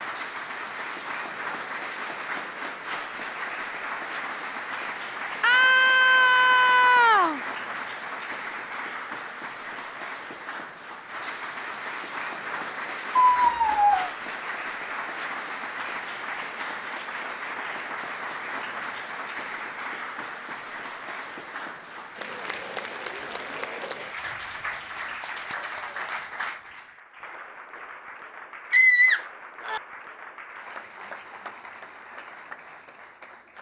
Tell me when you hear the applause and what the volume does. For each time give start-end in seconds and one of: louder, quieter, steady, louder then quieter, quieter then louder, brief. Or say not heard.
0.0-33.5 quieter.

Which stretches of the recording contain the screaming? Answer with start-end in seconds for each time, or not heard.
5.4-7.4, 13.2-14.1, 28.7-29.8.